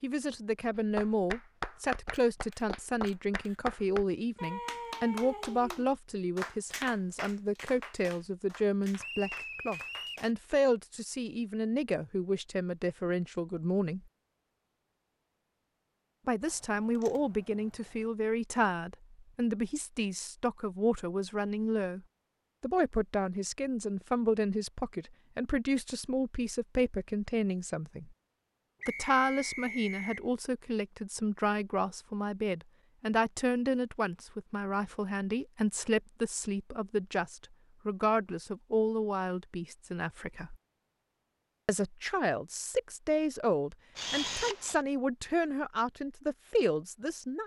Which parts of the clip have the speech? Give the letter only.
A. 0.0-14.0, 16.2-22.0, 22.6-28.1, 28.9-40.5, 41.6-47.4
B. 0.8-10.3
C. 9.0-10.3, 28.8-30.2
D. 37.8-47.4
A.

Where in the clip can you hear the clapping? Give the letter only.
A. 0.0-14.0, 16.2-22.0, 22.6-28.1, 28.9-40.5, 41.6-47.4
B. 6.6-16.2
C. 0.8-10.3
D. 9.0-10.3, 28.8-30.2
C.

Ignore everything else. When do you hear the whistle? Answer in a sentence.
The whistle can be heard from 9.0 to 10.3 s and from 28.8 to 30.2 s.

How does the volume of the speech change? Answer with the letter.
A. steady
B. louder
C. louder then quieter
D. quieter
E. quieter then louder
A.